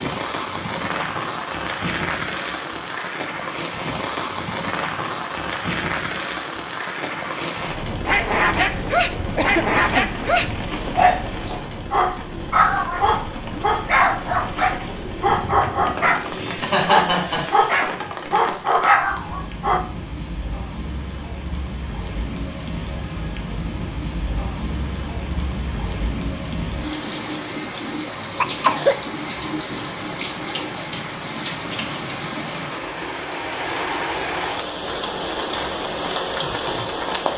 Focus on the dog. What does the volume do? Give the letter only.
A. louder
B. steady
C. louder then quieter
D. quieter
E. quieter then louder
B.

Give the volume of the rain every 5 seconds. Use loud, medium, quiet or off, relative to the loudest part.
loud, loud, medium, medium, medium, loud, loud, loud.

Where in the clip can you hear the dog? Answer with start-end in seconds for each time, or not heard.
8.1-19.9.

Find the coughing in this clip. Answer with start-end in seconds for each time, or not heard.
9.3-10.0, 16.2-17.7, 28.1-29.0.